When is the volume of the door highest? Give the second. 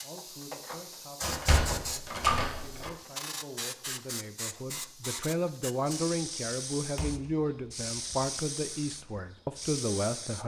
2 s.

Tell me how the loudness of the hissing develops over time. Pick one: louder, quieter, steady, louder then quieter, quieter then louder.
steady.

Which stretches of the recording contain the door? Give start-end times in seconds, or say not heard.
1.2-2.9, 7.0-8.3.